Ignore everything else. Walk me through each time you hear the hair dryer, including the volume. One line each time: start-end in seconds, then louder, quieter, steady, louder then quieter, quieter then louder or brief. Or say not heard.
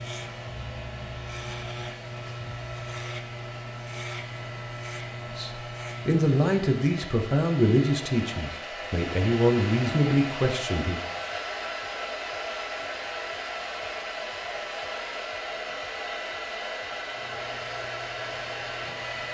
0.0-19.2 louder.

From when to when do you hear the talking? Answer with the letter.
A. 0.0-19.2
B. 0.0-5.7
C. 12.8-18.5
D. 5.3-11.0
D.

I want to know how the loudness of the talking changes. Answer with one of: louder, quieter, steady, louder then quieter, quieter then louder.
steady.